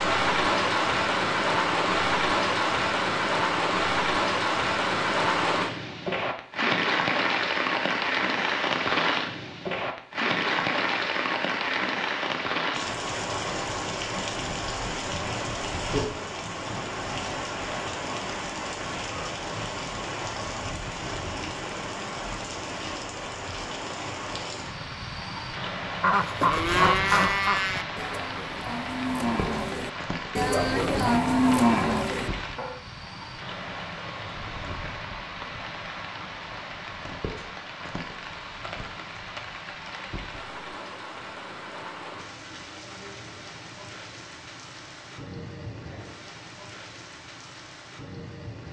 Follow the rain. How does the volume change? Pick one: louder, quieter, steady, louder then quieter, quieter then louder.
quieter.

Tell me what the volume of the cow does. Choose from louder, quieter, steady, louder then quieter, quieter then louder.
quieter then louder.